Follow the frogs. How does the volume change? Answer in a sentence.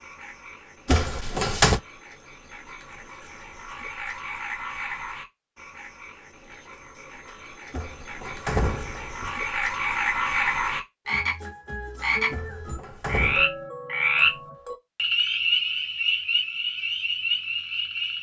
The loudness of the frogs goes up.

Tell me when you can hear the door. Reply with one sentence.
The door can be heard from 0.8 to 1.8 s, from 7.7 to 9.3 s and from 12.3 to 13.4 s.